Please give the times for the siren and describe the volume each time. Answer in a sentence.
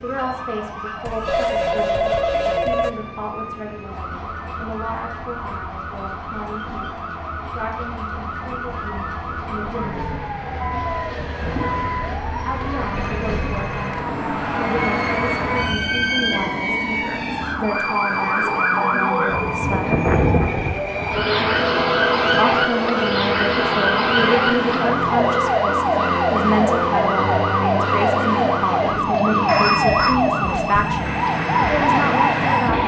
You can hear the siren from 0.0 to 32.8 s, getting louder.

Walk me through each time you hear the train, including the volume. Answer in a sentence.
The train can be heard from 0.0 to 32.8 s, getting louder.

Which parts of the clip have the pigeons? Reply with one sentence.
You can't hear the pigeons here.